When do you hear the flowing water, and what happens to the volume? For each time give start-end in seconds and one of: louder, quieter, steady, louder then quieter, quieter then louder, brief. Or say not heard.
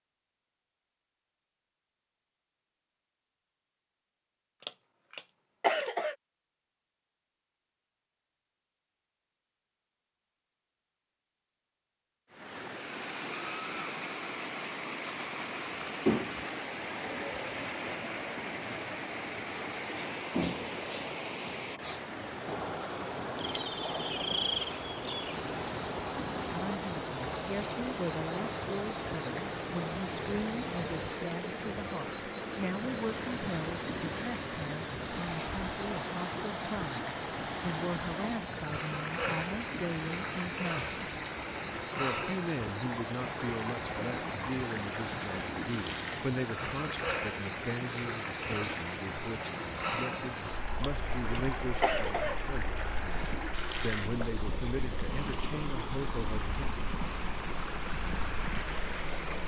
12.3-59.4 steady.